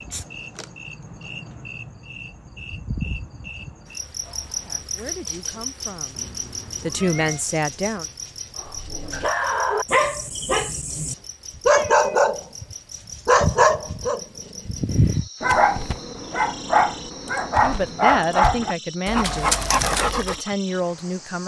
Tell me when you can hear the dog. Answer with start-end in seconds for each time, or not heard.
8.6-20.4.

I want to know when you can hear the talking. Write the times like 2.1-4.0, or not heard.
4.6-6.2, 6.8-8.1, 17.6-21.4.